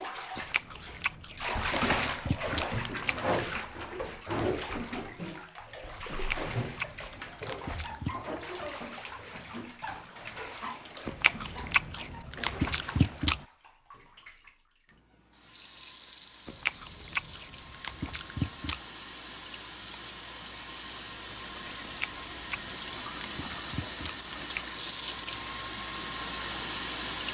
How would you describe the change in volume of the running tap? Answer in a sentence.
The loudness of the running tap goes down, then up.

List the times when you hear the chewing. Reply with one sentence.
You can hear the chewing from 0.3 to 3.1 s, from 6.1 to 8.2 s, from 11.1 to 13.4 s, from 16.4 to 18.8 s and from 21.8 to 24.6 s.